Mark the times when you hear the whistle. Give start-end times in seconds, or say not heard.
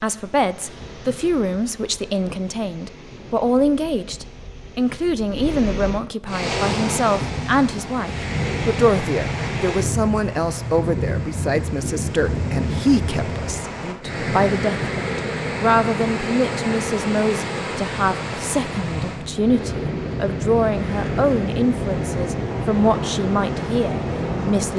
not heard.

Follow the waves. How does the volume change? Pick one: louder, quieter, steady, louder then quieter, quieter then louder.
louder.